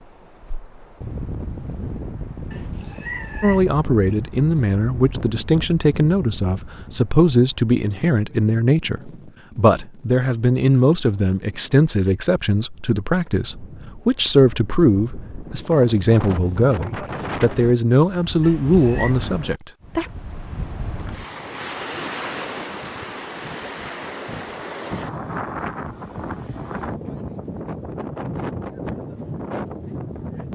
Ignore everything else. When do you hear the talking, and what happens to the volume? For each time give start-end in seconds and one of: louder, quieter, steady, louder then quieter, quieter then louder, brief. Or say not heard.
3.4-20.1 steady.